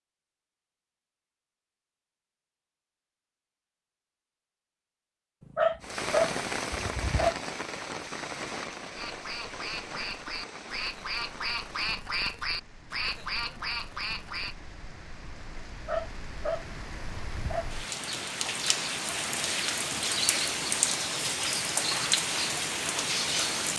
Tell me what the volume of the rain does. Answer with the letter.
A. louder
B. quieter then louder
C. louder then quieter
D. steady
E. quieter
B.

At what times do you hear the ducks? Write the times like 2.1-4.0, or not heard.
8.9-14.6.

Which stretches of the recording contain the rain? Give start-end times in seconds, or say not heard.
5.8-23.7.